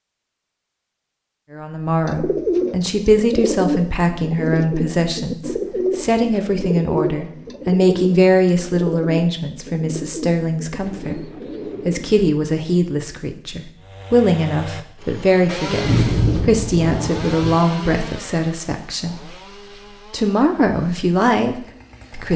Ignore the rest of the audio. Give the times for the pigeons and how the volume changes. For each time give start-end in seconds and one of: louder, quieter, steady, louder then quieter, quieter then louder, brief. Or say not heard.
2.0-12.3 quieter.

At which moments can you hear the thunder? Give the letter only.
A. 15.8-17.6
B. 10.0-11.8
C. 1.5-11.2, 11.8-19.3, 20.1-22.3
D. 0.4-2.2
A.